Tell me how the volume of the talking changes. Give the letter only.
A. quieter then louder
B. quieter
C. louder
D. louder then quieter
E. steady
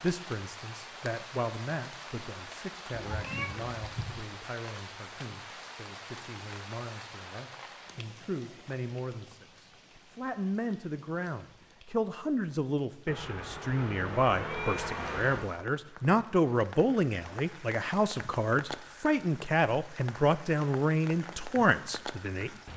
C.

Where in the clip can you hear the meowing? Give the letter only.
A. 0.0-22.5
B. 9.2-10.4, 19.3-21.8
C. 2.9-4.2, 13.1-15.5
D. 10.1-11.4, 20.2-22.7
C.